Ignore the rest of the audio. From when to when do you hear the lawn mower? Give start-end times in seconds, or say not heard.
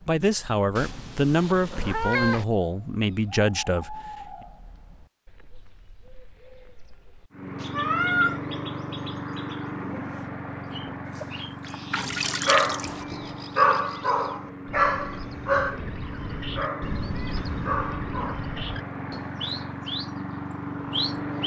7.3-21.4.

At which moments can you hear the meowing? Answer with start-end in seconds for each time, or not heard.
0.8-2.5, 7.7-8.4, 16.8-17.9.